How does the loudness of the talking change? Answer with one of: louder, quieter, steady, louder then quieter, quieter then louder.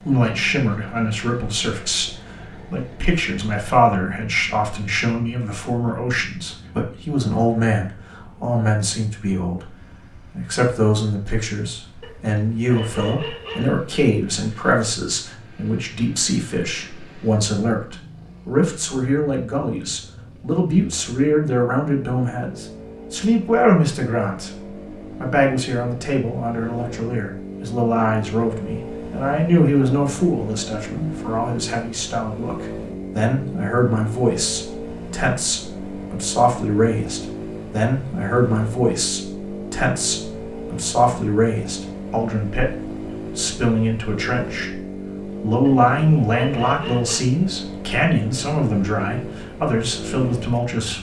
steady.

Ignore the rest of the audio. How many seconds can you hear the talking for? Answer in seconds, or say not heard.
50 s.